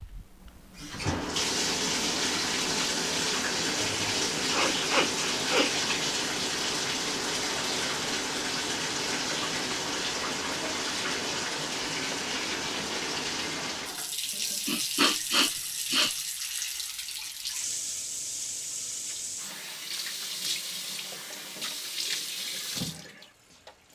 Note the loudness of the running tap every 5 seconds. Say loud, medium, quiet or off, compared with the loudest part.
loud, loud, loud, medium, medium.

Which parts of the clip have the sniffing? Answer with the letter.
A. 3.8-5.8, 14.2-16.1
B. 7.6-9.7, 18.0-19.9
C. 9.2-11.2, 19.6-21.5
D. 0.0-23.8
A.